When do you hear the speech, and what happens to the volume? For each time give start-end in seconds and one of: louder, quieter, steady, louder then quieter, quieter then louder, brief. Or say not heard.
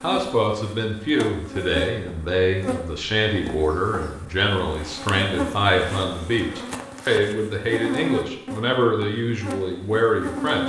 0.0-10.6 steady.